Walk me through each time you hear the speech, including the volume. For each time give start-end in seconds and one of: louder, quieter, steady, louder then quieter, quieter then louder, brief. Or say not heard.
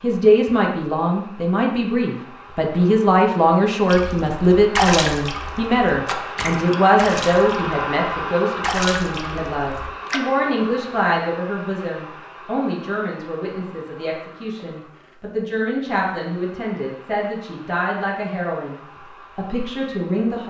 0.0-20.4 quieter.